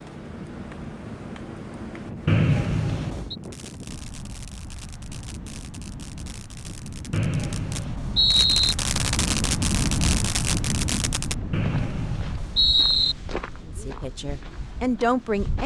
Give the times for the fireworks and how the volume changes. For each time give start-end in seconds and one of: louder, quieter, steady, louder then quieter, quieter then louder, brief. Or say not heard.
3.4-11.3 louder.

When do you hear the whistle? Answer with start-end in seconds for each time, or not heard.
2.2-3.4, 7.1-8.8, 11.5-13.2.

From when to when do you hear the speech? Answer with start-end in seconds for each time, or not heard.
13.7-15.6.